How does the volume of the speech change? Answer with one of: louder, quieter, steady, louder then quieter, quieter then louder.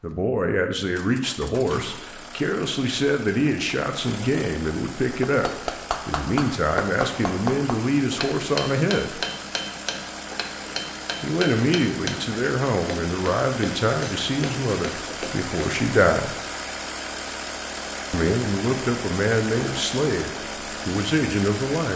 steady.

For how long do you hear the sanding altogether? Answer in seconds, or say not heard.
not heard.